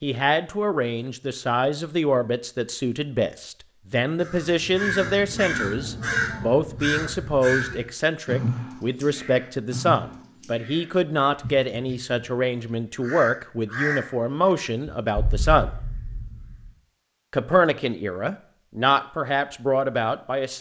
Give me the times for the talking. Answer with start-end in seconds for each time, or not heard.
0.0-15.7, 17.3-20.5.